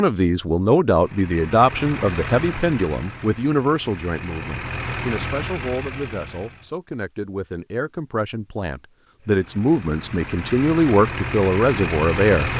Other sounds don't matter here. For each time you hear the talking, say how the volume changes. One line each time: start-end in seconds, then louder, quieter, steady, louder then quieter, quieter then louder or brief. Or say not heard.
0.0-12.5 quieter then louder.